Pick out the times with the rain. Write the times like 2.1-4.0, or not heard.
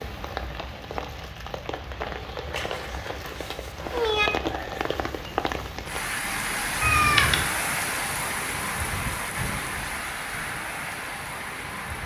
0.0-12.0.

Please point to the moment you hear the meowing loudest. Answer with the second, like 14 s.
7 s.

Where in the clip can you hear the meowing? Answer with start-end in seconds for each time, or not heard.
2.5-4.3, 6.8-7.5.